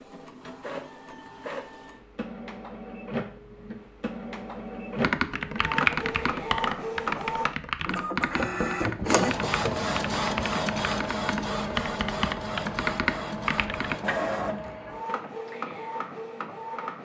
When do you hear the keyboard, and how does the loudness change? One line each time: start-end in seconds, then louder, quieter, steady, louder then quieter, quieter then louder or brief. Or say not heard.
5.0-13.9 quieter then louder.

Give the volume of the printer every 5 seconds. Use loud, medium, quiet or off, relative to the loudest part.
medium, loud, loud, medium.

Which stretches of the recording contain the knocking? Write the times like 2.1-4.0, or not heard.
8.3-9.8.